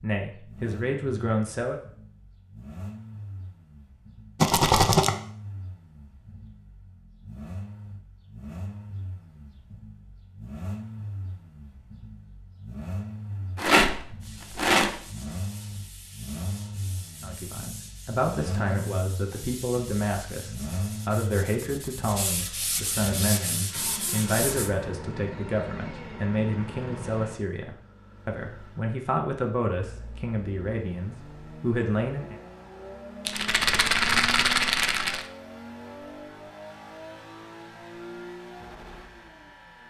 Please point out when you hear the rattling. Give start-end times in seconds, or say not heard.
4.4-5.2, 13.6-15.0, 33.2-35.2.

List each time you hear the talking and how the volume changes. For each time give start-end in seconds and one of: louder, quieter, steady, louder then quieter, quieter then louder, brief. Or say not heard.
0.0-1.8 brief
17.2-32.4 steady.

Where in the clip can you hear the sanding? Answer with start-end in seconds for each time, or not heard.
14.2-24.7.